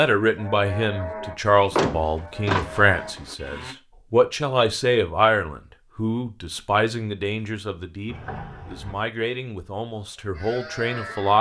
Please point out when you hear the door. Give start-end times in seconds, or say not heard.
1.4-3.4, 8.1-9.1.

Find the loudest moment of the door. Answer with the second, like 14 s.
2 s.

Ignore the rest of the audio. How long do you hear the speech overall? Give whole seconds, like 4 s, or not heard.
11 s.